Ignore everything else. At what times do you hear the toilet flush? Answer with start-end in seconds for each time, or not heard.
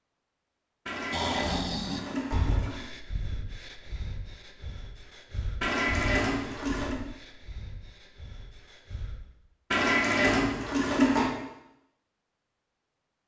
0.8-2.9, 5.6-7.0, 9.7-11.3.